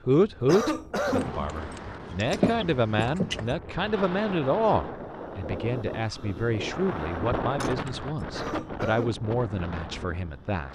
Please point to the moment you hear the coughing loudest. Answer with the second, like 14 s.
1 s.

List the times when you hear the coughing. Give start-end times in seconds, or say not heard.
0.4-1.4, 8.2-9.2.